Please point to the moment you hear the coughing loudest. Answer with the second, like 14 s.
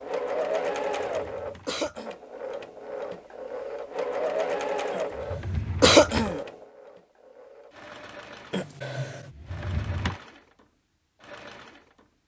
6 s.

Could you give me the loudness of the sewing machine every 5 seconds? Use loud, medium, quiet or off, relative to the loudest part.
loud, medium, quiet.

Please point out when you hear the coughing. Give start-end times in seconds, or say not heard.
1.6-2.1, 5.8-6.4, 8.5-9.3.